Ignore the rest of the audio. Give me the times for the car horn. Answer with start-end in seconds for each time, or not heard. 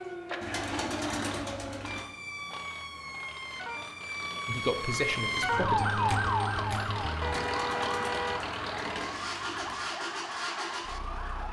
7.2-8.4.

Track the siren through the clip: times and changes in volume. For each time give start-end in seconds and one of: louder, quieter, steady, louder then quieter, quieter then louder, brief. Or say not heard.
0.0-11.4 louder then quieter.